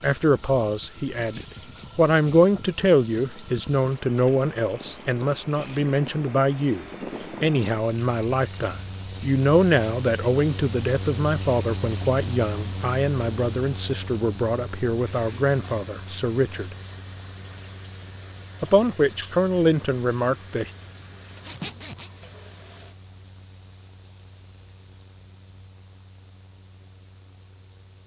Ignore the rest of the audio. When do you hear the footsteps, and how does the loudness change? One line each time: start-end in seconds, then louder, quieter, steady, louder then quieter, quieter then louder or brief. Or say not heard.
not heard.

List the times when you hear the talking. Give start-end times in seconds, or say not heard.
0.0-16.8, 18.6-20.7.